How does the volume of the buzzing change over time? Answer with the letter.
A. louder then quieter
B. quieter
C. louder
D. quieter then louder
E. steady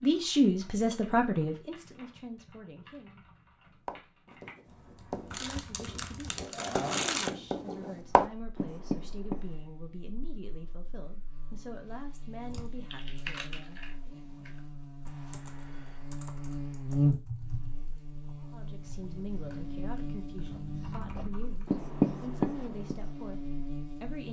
A.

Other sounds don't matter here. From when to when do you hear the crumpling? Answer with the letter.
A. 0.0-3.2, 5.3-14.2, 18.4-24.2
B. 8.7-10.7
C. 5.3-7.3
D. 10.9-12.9
C.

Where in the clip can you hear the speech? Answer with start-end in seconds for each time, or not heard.
0.0-3.2, 5.3-14.2, 18.4-24.2.